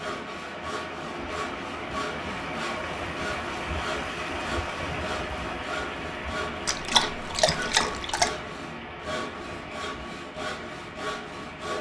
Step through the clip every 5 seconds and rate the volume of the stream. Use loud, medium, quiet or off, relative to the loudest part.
loud, loud, medium.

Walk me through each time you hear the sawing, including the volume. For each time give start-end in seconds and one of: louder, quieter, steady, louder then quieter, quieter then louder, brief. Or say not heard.
0.0-11.7 steady.